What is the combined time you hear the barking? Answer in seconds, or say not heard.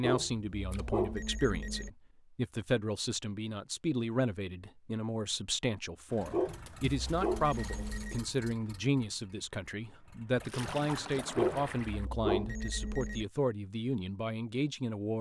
6 s.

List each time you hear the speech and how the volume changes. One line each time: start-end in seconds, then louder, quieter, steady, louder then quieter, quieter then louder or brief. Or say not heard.
0.0-15.1 steady.